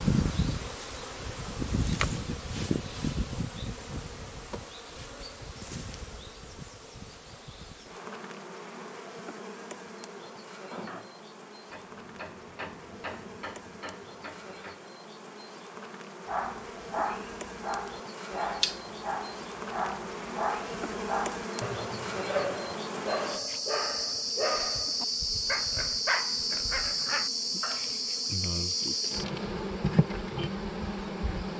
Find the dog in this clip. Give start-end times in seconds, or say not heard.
16.2-27.9.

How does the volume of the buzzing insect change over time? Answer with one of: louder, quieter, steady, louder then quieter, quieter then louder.
quieter then louder.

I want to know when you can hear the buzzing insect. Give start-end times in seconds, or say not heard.
0.0-31.5.